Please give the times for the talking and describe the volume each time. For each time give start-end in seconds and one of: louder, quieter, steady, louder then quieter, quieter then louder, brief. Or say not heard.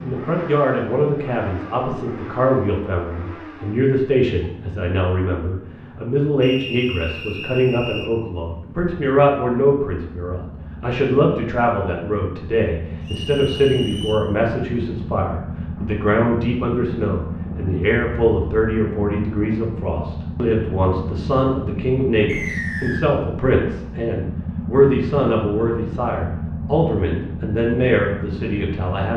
0.0-29.1 steady.